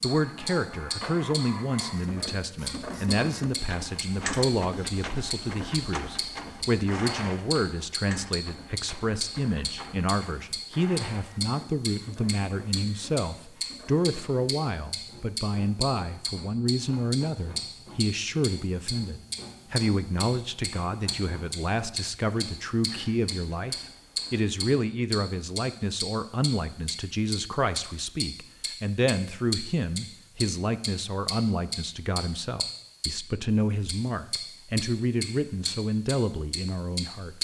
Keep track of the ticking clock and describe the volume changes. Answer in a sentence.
The volume of the ticking clock stays about the same.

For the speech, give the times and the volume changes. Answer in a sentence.
You can hear the speech from 0.0 to 37.3 s, at a steady volume.